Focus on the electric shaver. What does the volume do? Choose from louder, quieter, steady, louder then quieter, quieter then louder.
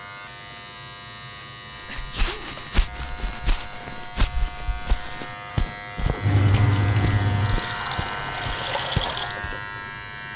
louder.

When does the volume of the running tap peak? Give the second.
7 s.